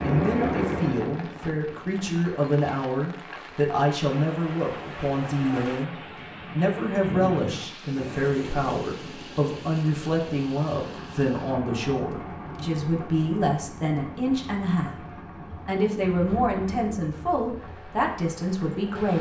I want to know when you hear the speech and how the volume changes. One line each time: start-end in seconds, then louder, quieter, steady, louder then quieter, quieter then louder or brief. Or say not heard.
0.0-19.1 steady.